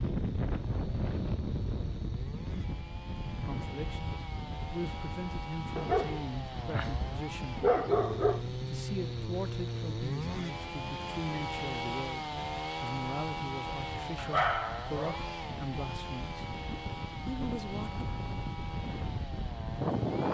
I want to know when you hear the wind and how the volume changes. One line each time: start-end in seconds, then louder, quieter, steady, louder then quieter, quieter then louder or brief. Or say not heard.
0.0-20.2 quieter then louder.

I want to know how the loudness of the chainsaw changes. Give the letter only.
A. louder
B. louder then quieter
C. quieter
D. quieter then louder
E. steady
B.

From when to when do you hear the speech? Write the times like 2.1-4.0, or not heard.
3.5-7.7, 8.7-12.2, 12.8-16.5, 17.2-18.1.